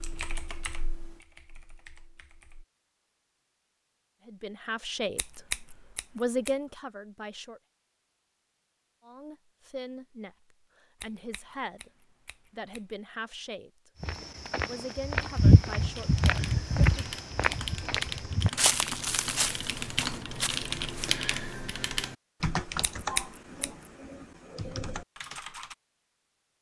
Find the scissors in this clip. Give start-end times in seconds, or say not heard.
5.2-6.5, 11.0-12.9, 22.8-23.9.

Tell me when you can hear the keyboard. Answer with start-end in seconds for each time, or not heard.
0.0-2.6, 15.9-25.8.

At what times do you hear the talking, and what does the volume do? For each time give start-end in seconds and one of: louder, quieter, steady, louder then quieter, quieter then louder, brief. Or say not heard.
4.2-5.4 brief
6.2-7.6 brief
9.1-13.9 quieter then louder
14.6-17.1 brief.